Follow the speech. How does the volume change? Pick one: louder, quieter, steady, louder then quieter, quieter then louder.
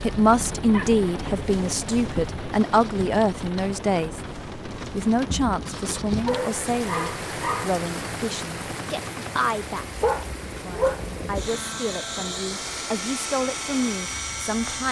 quieter.